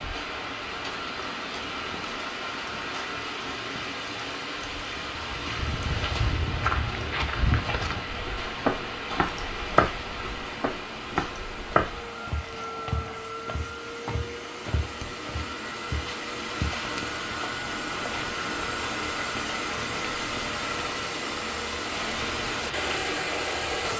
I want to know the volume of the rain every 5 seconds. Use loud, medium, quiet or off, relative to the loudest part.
loud, loud, medium, loud, loud.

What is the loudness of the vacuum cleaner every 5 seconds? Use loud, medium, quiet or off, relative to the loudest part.
medium, medium, medium, loud, loud.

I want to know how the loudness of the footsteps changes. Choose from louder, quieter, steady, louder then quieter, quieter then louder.
quieter.